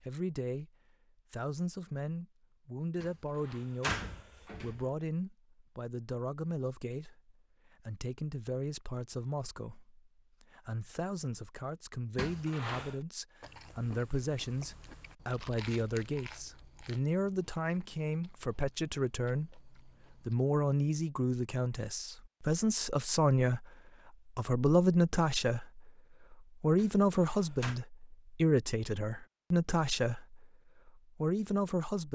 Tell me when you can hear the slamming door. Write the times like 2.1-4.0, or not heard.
3.0-4.8, 12.2-13.0, 26.8-27.8.